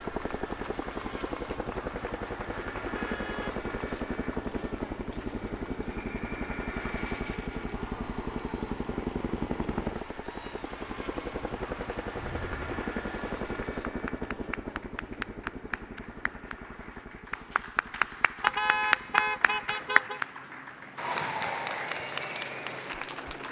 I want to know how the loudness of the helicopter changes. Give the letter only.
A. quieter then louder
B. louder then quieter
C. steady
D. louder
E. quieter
E.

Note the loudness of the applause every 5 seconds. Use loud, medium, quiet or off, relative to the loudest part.
quiet, quiet, quiet, loud, loud.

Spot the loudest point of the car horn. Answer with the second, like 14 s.
19 s.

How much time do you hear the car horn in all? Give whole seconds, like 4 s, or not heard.
3 s.